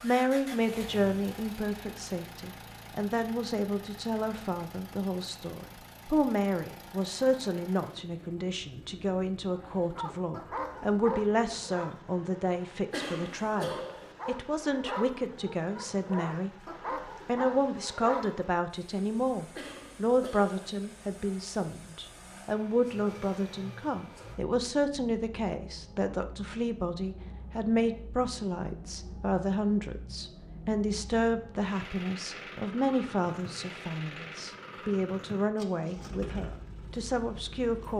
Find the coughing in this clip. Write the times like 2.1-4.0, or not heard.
12.9-14.2, 19.6-20.6.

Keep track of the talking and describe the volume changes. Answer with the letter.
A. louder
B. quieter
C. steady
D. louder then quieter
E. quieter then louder
C.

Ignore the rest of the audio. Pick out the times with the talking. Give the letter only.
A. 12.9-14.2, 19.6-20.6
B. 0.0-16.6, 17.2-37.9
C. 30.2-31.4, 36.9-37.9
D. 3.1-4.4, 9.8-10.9
B.